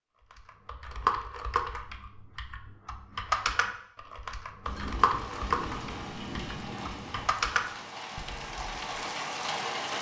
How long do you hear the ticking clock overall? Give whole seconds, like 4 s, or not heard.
not heard.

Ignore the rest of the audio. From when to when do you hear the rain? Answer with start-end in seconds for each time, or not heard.
4.6-9.9.